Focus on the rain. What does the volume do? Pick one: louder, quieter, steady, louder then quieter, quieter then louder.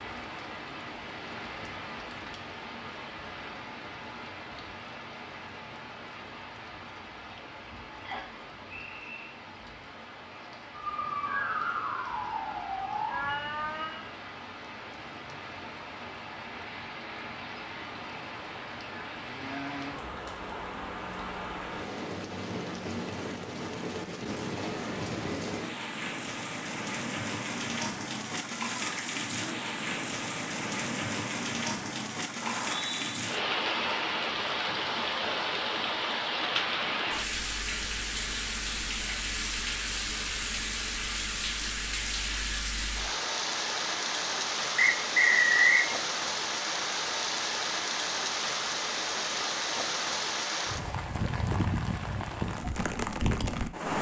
louder.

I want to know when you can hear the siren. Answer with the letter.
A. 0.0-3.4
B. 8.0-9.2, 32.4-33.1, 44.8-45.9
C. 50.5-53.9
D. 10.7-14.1
D.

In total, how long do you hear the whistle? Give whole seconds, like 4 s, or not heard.
3 s.